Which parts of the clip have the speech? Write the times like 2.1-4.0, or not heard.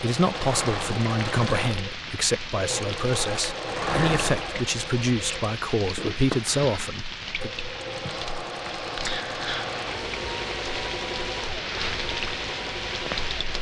0.0-7.5.